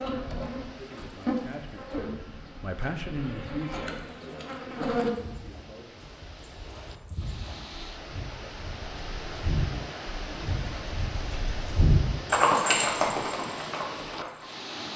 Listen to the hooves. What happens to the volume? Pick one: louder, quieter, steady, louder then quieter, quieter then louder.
louder.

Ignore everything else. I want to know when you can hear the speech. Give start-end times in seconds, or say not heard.
0.0-6.1.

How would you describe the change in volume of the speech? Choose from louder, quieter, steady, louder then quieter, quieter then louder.
louder then quieter.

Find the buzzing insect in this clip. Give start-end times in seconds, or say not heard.
0.0-5.1.